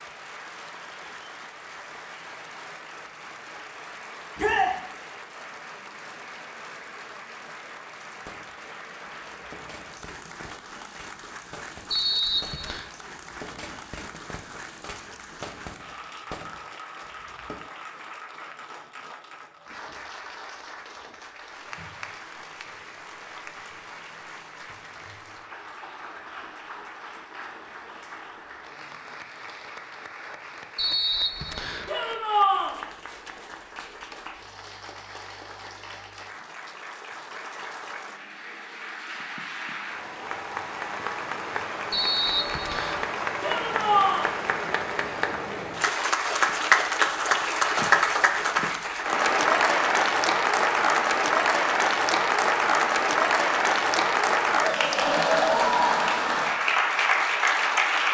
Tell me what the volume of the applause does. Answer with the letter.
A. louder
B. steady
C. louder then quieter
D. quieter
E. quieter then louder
A.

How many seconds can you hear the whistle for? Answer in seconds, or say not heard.
3 s.